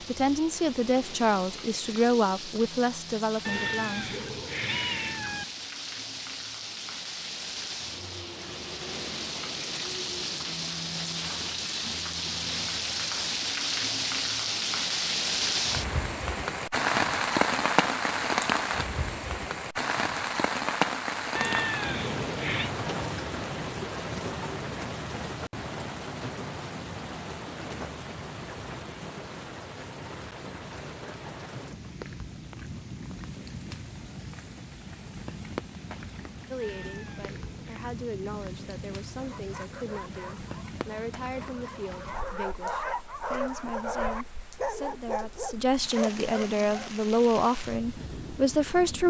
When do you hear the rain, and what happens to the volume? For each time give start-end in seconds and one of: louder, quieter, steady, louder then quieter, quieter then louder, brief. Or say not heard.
0.0-49.0 louder then quieter.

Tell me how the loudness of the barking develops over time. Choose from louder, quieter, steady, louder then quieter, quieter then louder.
louder.